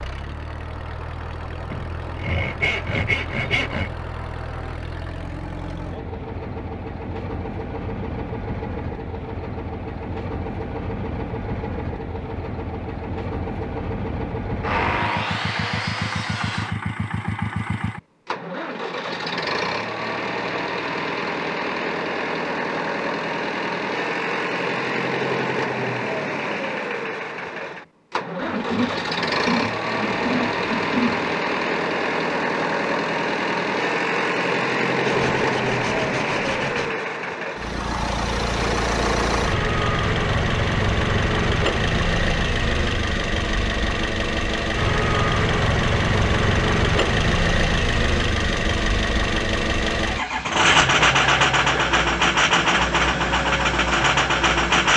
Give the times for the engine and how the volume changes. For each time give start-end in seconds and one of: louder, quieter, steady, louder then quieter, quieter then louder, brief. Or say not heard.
0.0-54.9 louder.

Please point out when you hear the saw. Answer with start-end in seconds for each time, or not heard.
1.7-3.9, 14.6-16.8, 28.4-31.2, 35.0-37.0, 50.9-52.0.